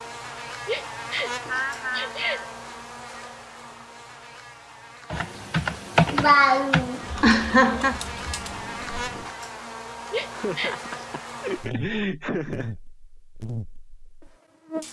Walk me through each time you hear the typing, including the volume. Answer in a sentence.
You can hear the typing from 5.1 to 9.3 s, getting quieter.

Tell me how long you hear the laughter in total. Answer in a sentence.
You can hear the laughter for 5 seconds altogether.